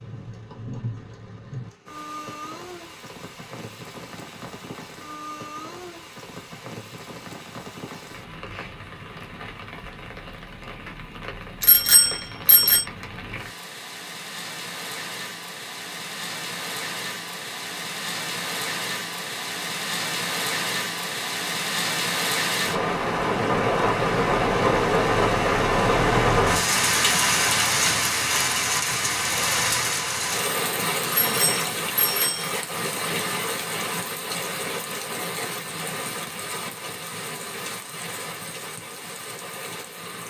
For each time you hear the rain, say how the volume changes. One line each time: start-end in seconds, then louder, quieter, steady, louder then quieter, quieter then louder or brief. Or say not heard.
0.0-40.2 louder then quieter.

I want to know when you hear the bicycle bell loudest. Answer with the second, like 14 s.
12 s.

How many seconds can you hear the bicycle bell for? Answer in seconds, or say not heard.
3 s.